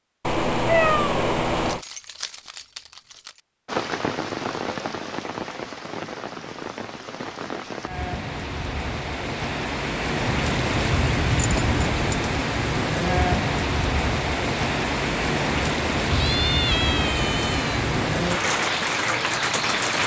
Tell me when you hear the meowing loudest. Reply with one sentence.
The loudest moment of the meowing is at 1 second.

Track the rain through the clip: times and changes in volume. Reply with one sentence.
You can hear the rain from 3.6 to 20.0 s, getting louder.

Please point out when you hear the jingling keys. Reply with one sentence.
The jingling keys can be heard from 1.6 to 3.4 s and from 10.4 to 12.2 s.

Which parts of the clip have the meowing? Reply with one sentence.
You can hear the meowing from 0.2 to 1.8 s and from 16.1 to 17.8 s.